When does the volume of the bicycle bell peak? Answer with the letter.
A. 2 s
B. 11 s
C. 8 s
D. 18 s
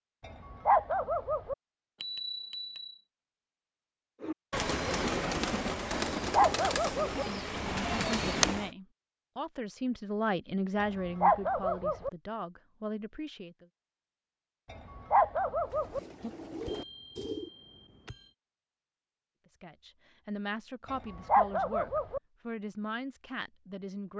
A.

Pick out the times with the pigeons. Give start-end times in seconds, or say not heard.
4.2-8.7, 15.6-17.5.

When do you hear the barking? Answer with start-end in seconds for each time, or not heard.
0.2-1.6, 6.2-7.2, 10.8-12.1, 14.7-16.0, 20.9-22.2.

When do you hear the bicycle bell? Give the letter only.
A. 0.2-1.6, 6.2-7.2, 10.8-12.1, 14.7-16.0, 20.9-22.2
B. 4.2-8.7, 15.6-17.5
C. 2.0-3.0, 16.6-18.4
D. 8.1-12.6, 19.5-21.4
C.